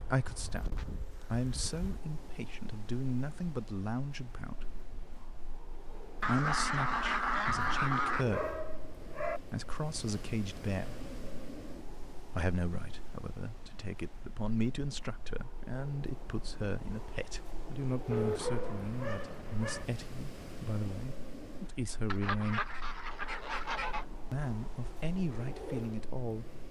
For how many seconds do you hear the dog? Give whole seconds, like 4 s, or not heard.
4 s.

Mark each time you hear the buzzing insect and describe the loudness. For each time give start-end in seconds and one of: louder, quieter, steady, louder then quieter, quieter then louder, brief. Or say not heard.
not heard.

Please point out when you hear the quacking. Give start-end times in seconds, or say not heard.
6.2-8.2, 22.1-24.1.